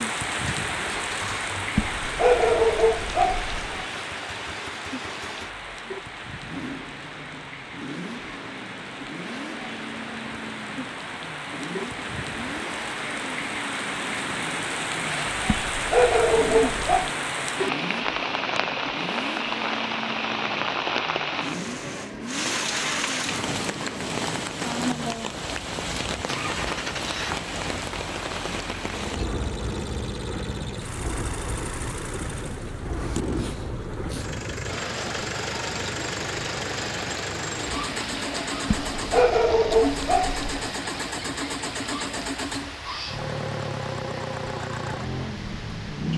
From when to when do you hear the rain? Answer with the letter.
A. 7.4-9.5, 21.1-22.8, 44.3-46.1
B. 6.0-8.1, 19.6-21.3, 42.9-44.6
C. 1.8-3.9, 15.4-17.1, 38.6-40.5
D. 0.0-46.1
D.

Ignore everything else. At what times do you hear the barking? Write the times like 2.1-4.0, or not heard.
1.8-3.9, 15.4-17.1, 38.6-40.5.